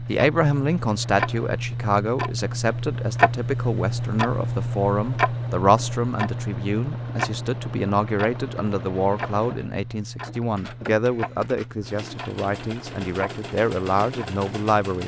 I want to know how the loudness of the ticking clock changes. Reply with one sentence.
The volume of the ticking clock goes down.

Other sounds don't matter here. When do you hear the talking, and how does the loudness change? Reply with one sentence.
The talking can be heard from 0.1 to 15.0 s, at a steady volume.